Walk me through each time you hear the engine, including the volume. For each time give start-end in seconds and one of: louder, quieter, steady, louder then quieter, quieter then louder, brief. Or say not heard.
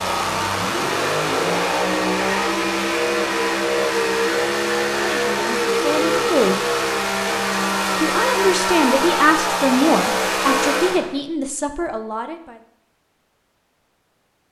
0.0-11.2 steady.